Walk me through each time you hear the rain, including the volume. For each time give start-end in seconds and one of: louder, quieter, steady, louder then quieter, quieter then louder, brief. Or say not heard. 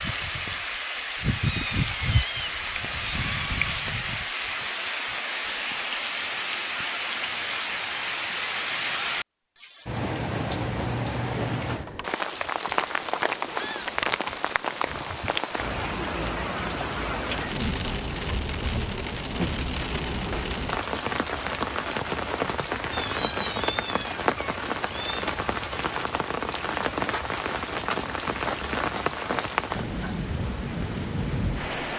0.0-31.9 steady.